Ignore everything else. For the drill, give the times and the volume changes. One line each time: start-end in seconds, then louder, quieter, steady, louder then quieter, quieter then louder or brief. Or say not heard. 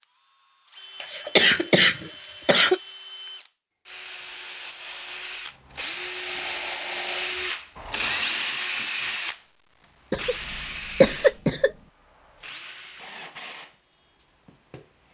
0.0-15.0 louder then quieter.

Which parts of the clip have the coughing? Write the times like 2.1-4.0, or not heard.
1.0-2.8, 10.1-11.7.